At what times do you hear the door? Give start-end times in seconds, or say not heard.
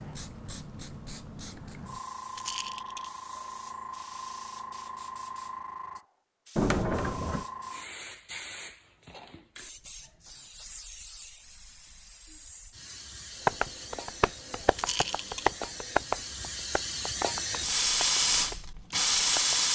6.5-7.5.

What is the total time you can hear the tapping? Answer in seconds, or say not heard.
6 s.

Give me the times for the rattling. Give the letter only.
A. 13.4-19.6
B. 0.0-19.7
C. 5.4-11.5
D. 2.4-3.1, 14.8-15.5
D.